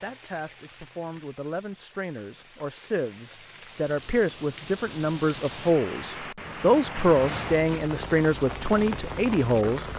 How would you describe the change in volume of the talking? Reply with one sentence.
The volume of the talking goes up.